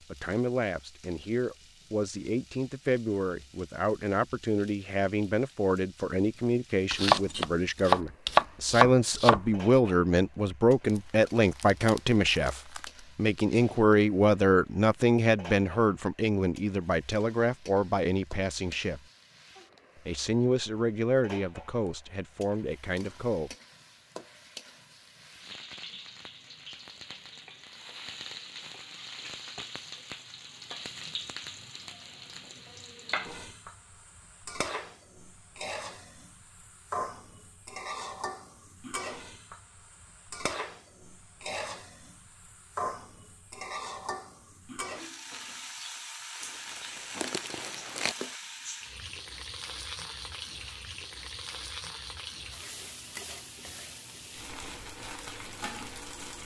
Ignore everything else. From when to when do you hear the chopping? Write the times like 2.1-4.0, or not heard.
6.9-9.4.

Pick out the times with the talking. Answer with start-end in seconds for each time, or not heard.
0.1-19.0, 20.1-23.6.